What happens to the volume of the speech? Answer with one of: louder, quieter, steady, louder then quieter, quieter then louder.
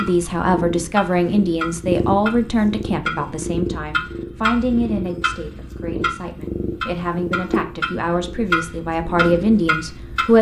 quieter then louder.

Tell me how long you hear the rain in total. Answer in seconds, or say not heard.
not heard.